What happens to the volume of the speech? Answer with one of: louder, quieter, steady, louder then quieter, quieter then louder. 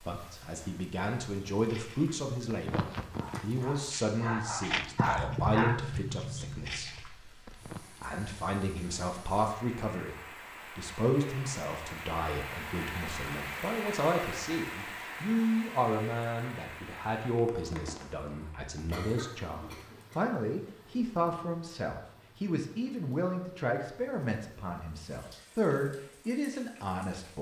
steady.